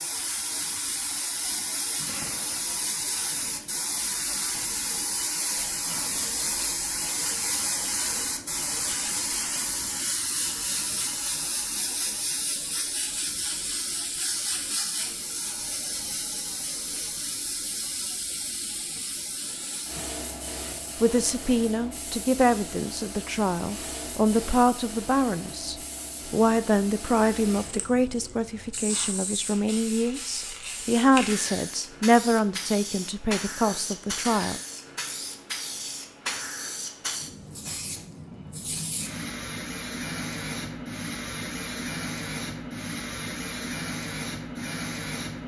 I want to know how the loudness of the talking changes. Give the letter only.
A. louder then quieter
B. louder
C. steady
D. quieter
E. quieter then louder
C.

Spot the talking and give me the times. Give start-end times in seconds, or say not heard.
21.0-34.6.